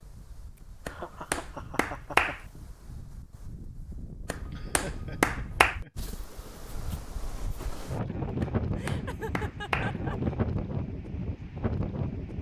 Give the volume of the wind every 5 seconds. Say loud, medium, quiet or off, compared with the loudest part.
quiet, loud, loud.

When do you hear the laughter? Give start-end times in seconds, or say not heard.
0.8-2.4, 4.5-6.1, 8.8-10.2.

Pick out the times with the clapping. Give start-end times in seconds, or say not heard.
0.8-2.4, 4.3-5.8, 8.4-10.0.